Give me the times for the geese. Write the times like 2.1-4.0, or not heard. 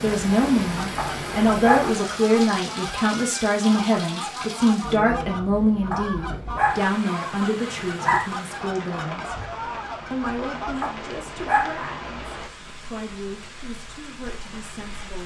0.8-10.8.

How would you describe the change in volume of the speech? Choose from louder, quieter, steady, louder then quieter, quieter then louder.
quieter.